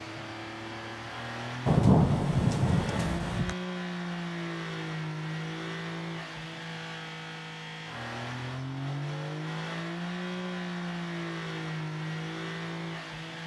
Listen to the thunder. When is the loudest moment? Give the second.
2 s.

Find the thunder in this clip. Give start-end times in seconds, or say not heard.
1.6-3.5.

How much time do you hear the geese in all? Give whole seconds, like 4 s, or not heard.
not heard.